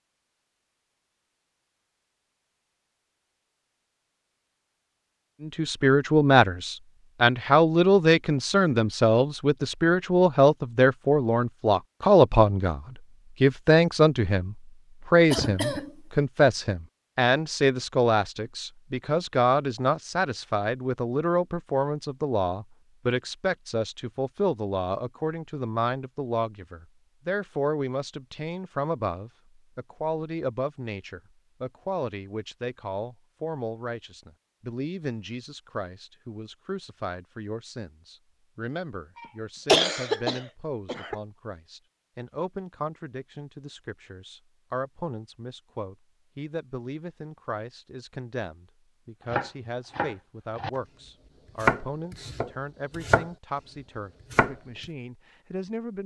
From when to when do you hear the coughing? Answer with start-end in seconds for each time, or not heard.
15.3-15.9, 39.1-41.2.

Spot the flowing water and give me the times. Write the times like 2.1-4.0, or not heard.
not heard.